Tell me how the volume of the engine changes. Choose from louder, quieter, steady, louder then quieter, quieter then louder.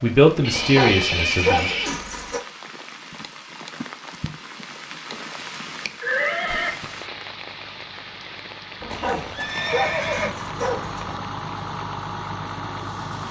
louder.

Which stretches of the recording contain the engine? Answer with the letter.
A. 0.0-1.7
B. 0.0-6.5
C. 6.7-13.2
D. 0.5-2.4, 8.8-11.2
C.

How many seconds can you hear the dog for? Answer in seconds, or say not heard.
4 s.